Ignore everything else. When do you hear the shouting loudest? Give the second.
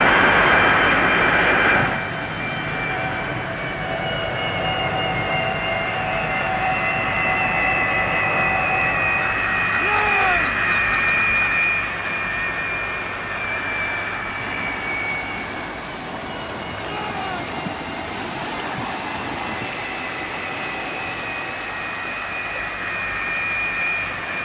10 s.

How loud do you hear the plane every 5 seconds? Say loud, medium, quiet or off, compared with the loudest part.
loud, loud, loud, quiet, medium.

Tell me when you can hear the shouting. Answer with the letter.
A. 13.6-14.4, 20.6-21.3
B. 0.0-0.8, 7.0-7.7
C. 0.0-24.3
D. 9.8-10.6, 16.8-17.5
D.